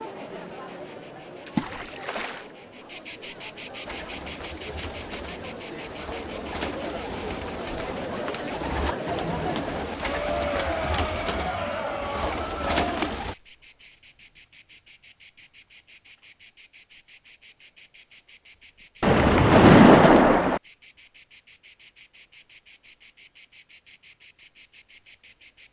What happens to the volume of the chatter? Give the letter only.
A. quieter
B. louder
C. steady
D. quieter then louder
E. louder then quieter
B.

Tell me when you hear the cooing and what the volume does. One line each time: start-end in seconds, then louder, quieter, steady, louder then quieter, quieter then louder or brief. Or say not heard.
3.9-13.3 louder.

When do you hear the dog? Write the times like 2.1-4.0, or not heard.
not heard.